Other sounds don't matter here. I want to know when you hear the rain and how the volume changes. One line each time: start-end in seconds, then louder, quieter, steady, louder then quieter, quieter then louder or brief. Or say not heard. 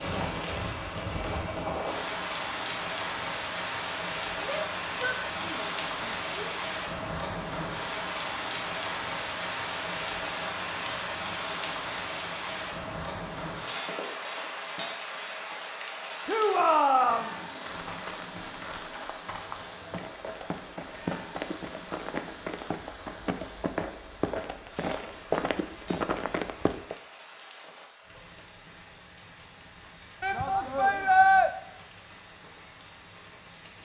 0.0-33.7 quieter.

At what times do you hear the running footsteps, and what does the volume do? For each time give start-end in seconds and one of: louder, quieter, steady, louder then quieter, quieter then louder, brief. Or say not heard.
17.6-26.9 louder.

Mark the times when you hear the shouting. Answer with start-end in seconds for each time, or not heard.
4.4-6.5, 16.2-17.4, 30.2-31.5.